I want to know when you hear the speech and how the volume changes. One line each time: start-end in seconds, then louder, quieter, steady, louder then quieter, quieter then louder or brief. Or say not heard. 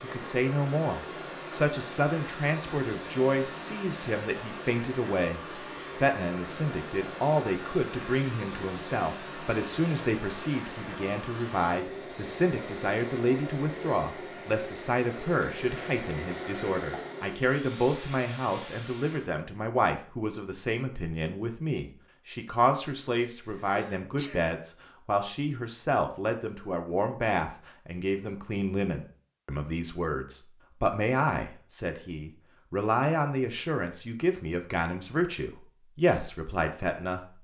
0.0-37.4 steady.